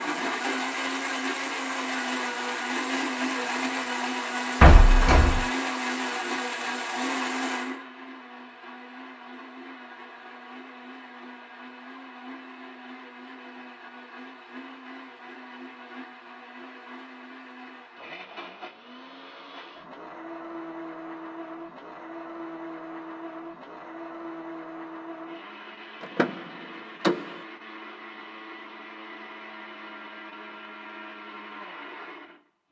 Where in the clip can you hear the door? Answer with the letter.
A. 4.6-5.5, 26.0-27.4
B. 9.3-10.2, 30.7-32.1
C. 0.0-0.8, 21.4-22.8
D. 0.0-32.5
A.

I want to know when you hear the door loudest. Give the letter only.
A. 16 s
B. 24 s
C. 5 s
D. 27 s
C.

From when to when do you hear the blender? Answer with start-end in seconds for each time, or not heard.
0.0-32.5.